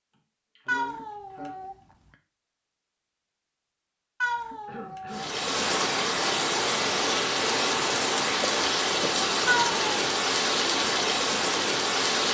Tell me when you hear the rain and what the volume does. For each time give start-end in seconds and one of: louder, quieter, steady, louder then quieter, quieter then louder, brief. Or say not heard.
5.1-12.2 steady.